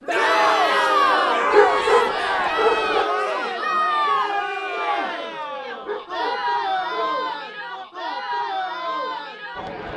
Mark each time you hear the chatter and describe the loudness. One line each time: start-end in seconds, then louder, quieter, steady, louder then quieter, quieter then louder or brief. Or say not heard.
0.1-9.9 quieter.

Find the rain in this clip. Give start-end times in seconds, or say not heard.
not heard.